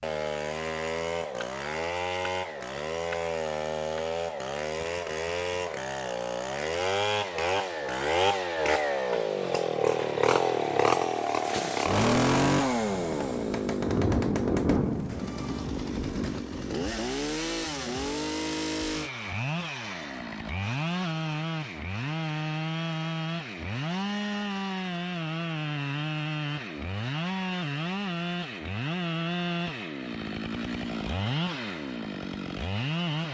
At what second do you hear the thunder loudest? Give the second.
15 s.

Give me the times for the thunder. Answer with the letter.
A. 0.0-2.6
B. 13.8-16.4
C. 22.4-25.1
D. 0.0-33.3
B.